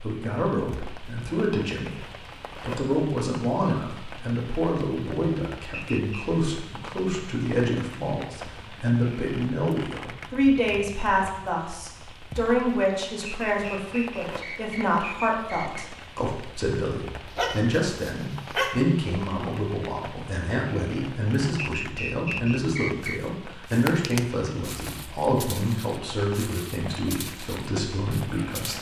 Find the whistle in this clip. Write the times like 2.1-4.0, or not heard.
5.7-6.3, 13.2-15.8, 21.6-23.2.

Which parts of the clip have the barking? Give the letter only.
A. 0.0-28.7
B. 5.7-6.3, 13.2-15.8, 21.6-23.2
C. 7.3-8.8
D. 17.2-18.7
D.